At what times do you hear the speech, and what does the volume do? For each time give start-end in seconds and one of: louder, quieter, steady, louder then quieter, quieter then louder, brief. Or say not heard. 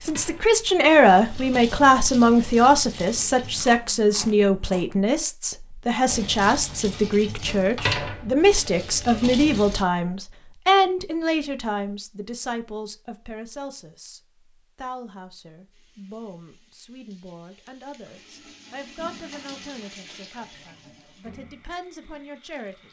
0.0-22.8 quieter.